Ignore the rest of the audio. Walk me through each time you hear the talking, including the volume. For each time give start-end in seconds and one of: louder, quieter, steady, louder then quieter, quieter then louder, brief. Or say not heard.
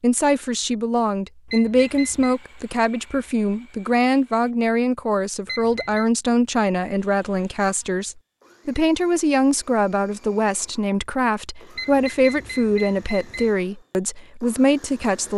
0.0-15.3 steady.